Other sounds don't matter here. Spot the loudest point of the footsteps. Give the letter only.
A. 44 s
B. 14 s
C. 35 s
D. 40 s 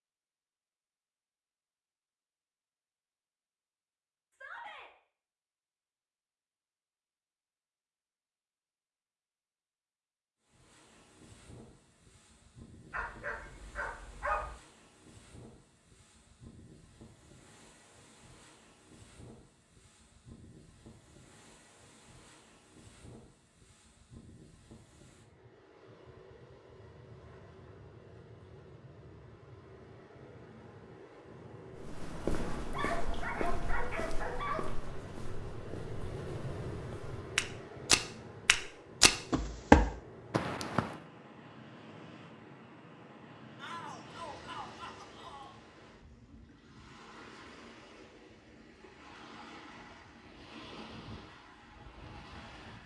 D.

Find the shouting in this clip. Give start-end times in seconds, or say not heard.
4.3-4.9, 43.5-45.5.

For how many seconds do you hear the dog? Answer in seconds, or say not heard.
4 s.